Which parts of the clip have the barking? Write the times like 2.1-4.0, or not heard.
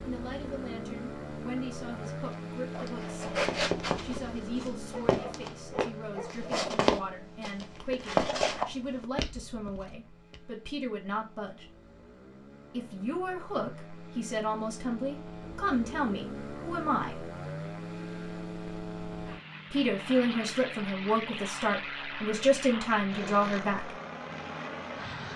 4.9-6.5.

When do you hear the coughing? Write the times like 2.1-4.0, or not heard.
not heard.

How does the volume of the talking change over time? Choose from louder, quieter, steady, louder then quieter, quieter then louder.
louder.